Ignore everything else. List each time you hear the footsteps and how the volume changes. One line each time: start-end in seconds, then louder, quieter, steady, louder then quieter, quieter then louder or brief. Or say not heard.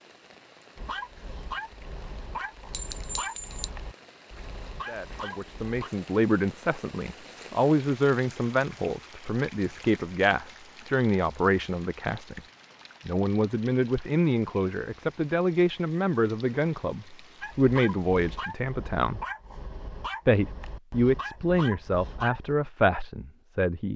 not heard.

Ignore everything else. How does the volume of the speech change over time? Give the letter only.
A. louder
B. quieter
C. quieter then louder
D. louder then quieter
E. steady
E.